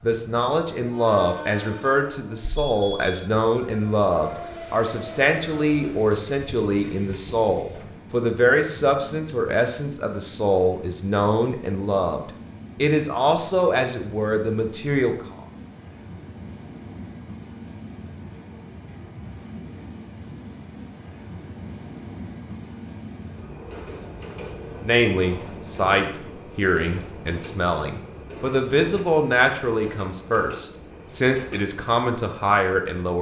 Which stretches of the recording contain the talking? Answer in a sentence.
You can hear the talking from 0.0 to 15.4 s and from 24.8 to 33.1 s.